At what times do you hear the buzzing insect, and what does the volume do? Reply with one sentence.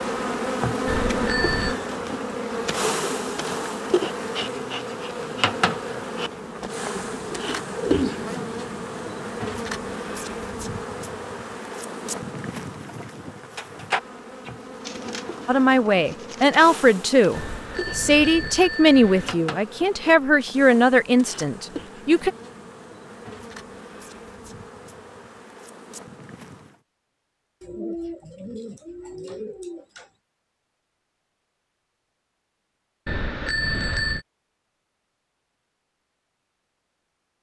You can hear the buzzing insect from 0.0 to 26.8 s, getting quieter.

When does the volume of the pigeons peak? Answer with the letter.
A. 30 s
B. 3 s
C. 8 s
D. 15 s
C.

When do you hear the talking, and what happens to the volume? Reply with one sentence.
The talking can be heard from 15.4 to 22.3 s, at a steady volume.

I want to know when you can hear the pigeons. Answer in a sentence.
The pigeons can be heard from 7.0 to 8.4 s, from 14.4 to 16.4 s and from 27.6 to 30.1 s.